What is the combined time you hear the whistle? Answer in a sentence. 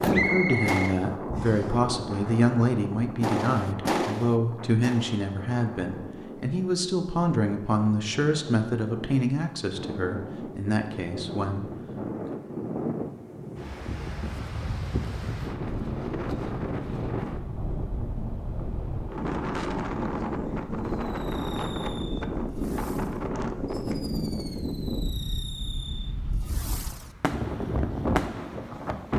You can hear the whistle for 2 seconds altogether.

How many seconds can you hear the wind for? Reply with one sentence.
You can hear the wind for 29 seconds altogether.